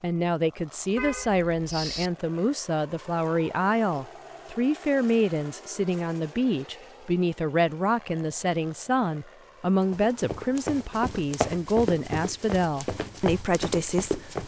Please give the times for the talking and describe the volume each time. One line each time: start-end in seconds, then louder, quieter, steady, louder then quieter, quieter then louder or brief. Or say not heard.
0.0-14.4 steady.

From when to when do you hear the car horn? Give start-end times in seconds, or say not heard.
0.9-2.1.